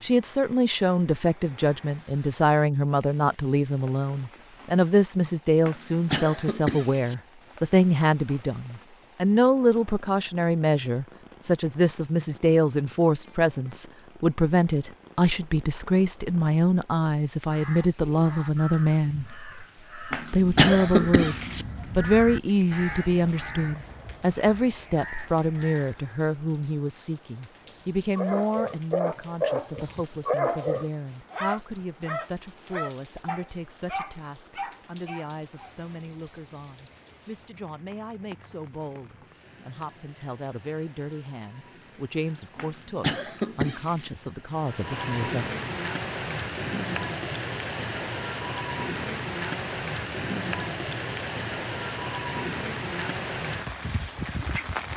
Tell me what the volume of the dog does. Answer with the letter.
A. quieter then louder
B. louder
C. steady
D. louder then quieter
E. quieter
E.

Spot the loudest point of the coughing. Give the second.
21 s.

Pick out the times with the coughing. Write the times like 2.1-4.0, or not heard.
5.7-7.2, 20.1-21.6, 42.5-44.1.